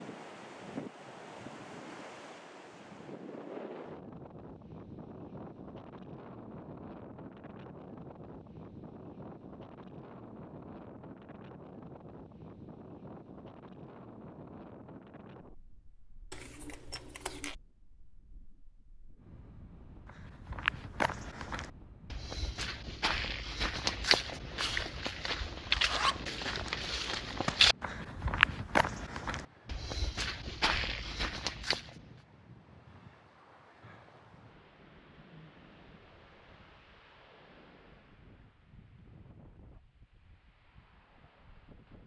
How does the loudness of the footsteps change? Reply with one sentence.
The volume of the footsteps goes up, then down.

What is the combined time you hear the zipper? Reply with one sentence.
The zipper can be heard for 3 seconds in total.